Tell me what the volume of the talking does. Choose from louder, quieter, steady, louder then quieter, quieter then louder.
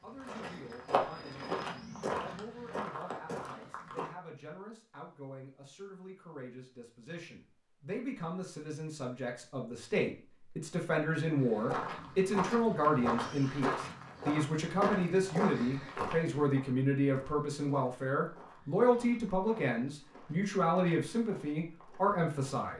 louder.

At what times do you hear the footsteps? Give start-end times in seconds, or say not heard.
0.1-4.2, 11.4-22.7.